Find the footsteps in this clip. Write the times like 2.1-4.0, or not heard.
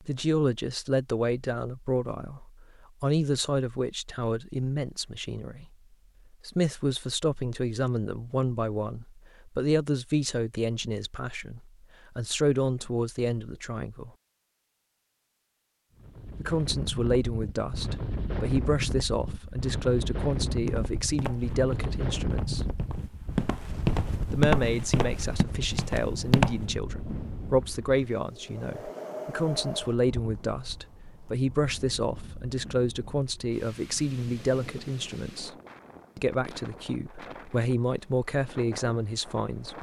20.6-26.6.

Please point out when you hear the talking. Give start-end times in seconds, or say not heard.
0.0-5.7, 6.5-14.1, 16.4-22.6, 24.3-35.5, 36.1-39.7.